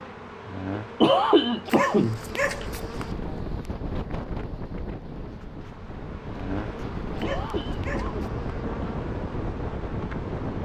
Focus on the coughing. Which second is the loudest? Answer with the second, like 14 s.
1 s.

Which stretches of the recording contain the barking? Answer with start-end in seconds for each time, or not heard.
1.6-3.1, 7.2-8.5.